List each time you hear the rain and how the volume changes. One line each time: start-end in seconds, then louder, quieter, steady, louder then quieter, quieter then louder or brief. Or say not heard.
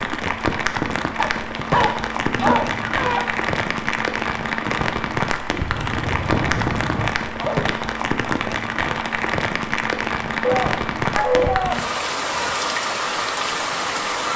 0.0-14.3 steady.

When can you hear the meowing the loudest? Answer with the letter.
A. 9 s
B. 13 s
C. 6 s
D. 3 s
D.